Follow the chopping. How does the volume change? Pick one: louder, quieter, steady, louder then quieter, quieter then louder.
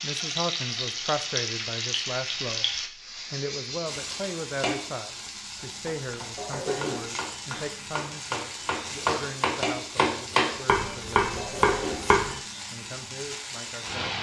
louder.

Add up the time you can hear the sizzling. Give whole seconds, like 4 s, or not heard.
14 s.